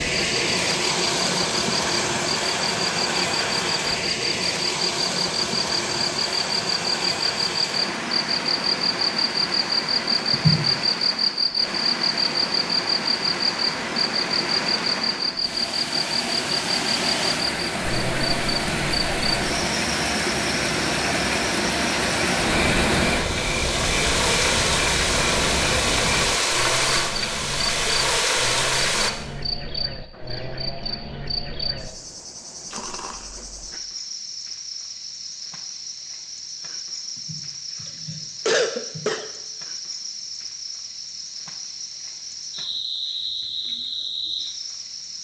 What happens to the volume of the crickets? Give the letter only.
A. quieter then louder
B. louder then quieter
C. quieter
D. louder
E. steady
C.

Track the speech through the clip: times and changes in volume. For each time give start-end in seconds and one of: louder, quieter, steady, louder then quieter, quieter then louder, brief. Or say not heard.
not heard.